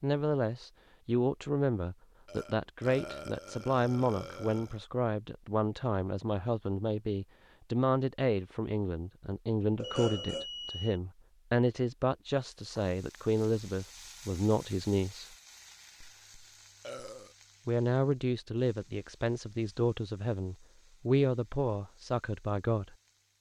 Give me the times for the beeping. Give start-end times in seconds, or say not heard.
9.8-11.0.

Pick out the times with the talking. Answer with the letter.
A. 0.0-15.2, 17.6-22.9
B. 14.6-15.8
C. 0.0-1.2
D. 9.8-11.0
A.